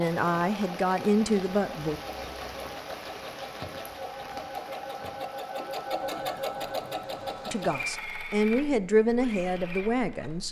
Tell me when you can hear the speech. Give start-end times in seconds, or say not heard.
0.0-2.0, 7.5-10.4.